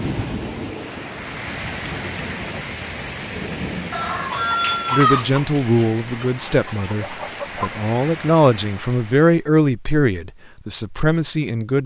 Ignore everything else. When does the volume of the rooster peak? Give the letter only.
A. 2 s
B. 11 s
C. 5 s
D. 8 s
C.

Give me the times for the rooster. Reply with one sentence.
The rooster can be heard from 3.9 to 7.7 s.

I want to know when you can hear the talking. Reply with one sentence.
You can hear the talking from 4.9 to 11.8 s.